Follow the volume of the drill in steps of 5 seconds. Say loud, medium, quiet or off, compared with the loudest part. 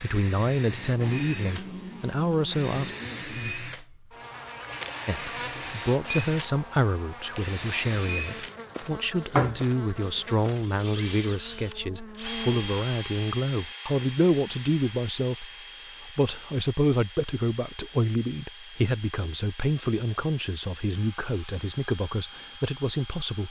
loud, loud, medium, quiet, quiet.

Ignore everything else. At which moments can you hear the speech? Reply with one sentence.
The speech can be heard from 0.0 to 2.9 s and from 5.0 to 23.4 s.